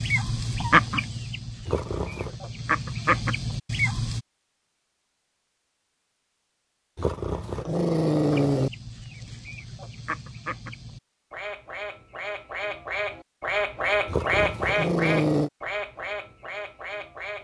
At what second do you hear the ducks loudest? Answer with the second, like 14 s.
1 s.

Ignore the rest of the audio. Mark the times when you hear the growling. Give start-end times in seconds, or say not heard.
1.6-2.4, 7.0-8.7, 14.1-15.5.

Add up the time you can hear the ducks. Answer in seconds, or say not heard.
13 s.